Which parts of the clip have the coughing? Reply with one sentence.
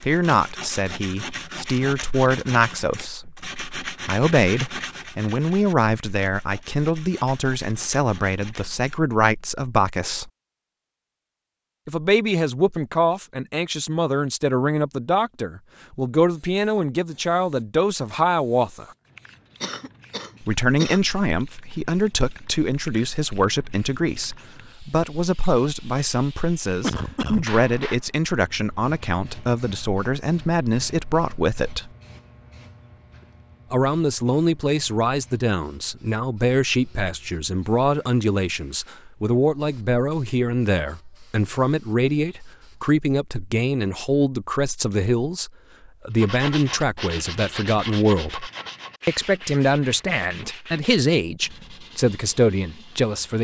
The coughing can be heard from 19.6 to 21.0 s and from 26.8 to 27.4 s.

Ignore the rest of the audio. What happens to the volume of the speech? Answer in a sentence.
The loudness of the speech stays about the same.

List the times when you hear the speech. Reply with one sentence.
The speech can be heard from 0.0 to 10.3 s, from 11.8 to 18.9 s, from 20.4 to 31.9 s and from 33.7 to 53.3 s.